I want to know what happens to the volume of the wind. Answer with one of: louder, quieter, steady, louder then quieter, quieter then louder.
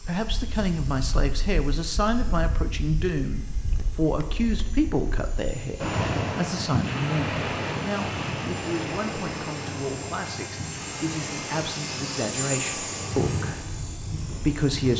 louder then quieter.